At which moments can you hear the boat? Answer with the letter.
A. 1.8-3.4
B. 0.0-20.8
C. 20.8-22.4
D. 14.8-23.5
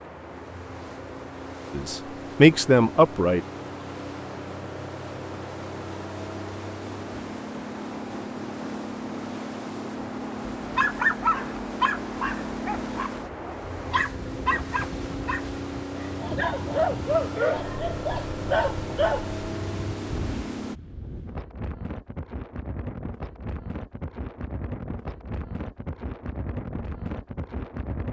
B.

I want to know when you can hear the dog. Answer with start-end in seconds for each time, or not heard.
10.6-19.2.